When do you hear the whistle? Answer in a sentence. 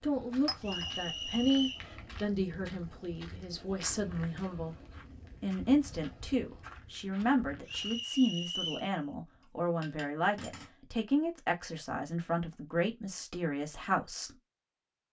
The whistle can be heard from 0.6 to 1.9 s and from 7.7 to 8.9 s.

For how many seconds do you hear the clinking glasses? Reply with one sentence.
You can hear the clinking glasses for 2 seconds altogether.